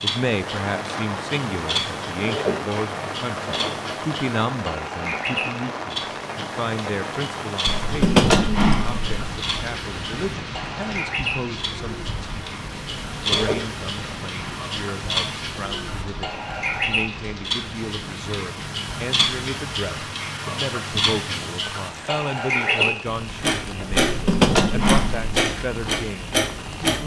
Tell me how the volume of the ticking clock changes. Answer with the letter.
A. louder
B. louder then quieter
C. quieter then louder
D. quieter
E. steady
A.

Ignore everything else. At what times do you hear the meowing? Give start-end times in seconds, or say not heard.
7.7-9.3, 23.9-25.4.